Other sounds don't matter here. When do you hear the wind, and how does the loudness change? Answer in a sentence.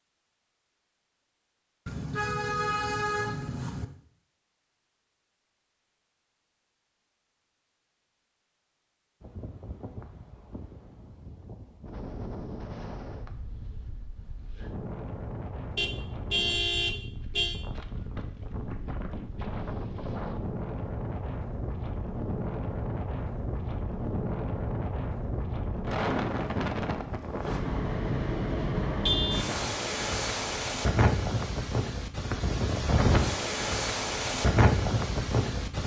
You can hear the wind from 9.2 to 35.8 s, getting louder.